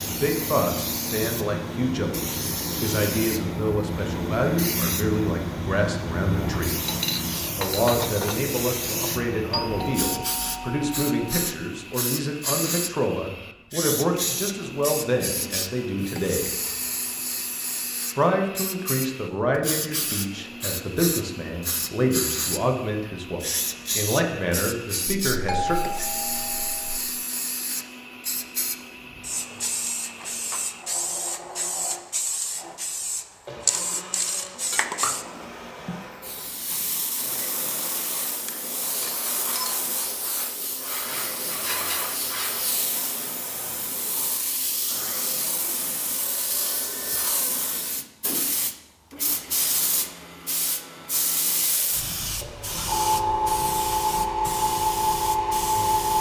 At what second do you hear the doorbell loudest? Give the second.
26 s.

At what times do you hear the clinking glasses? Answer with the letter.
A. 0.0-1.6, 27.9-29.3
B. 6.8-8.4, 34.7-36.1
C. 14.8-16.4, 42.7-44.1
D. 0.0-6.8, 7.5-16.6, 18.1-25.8
B.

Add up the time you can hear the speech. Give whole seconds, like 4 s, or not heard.
23 s.